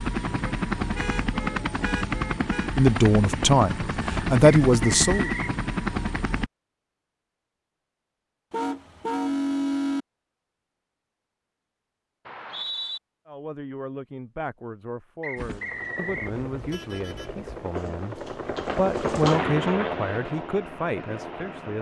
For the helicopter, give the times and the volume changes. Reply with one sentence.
The helicopter can be heard from 0.0 to 6.5 s, at a steady volume; and from 15.3 to 21.7 s, getting louder then quieter.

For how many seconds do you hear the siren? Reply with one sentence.
You can't hear the siren here.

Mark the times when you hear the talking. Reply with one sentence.
You can hear the talking from 2.8 to 5.3 s and from 13.2 to 21.7 s.